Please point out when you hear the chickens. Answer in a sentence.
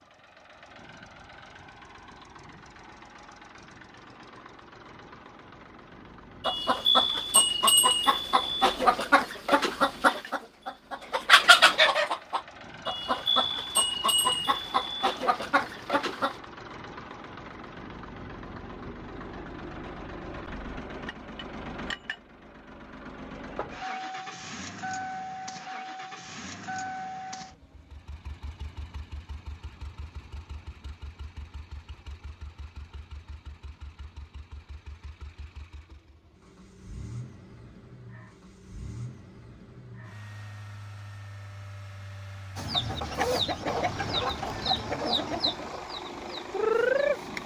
The chickens can be heard from 6.4 to 16.4 s and from 42.5 to 47.4 s.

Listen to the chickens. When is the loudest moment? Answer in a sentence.
The loudest moment of the chickens is at 11 seconds.